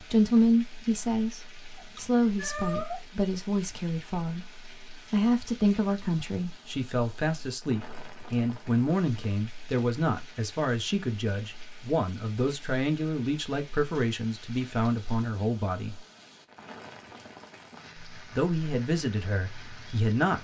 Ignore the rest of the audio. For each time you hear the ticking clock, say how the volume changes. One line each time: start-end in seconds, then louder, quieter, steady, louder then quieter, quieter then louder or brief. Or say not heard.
not heard.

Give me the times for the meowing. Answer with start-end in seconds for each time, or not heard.
1.8-3.0.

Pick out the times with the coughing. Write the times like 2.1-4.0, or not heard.
not heard.